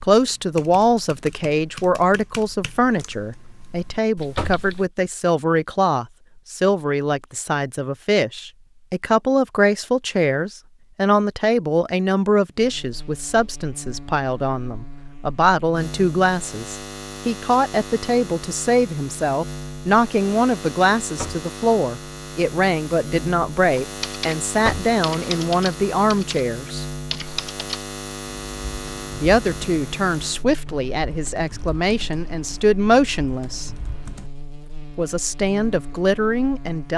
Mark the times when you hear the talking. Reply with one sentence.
You can hear the talking from 0.0 to 26.9 s, from 29.2 to 33.7 s and from 35.0 to 36.9 s.